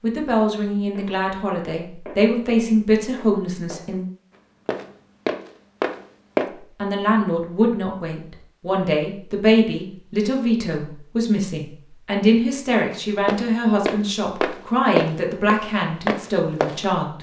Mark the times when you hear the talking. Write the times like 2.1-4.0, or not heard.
0.0-4.0, 6.8-17.1.